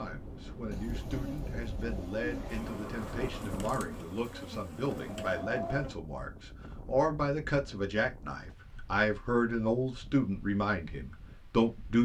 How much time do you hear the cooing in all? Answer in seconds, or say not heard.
2 s.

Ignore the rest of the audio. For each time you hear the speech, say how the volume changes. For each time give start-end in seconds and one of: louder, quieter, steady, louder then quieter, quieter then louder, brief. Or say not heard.
0.0-11.9 louder.